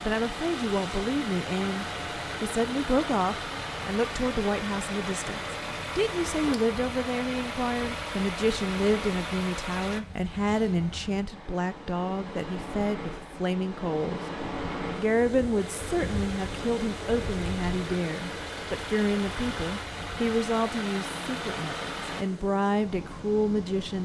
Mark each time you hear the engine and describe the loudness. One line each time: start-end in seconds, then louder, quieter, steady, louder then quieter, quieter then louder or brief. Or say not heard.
0.0-10.0 steady
15.6-22.2 louder.